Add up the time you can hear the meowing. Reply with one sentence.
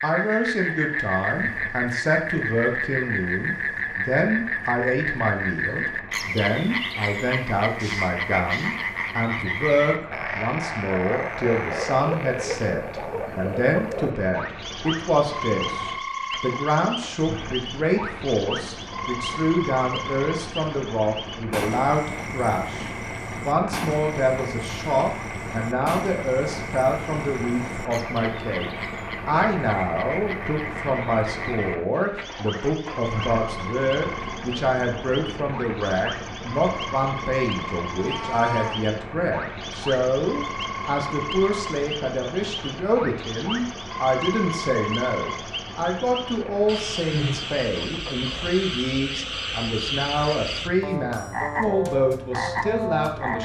The meowing can be heard for 2 seconds in total.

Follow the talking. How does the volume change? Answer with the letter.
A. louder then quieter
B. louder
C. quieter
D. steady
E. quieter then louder
D.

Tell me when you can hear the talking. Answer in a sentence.
The talking can be heard from 0.0 to 53.4 s.